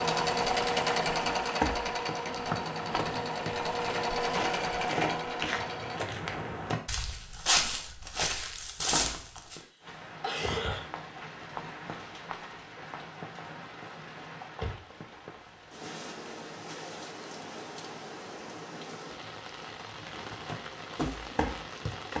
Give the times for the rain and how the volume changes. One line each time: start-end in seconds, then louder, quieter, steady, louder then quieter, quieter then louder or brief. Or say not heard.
9.8-22.1 steady.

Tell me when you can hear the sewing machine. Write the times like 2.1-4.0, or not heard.
0.0-6.0.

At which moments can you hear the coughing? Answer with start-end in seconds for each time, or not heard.
9.6-10.8.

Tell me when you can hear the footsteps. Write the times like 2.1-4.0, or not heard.
1.4-9.6, 19.8-22.1.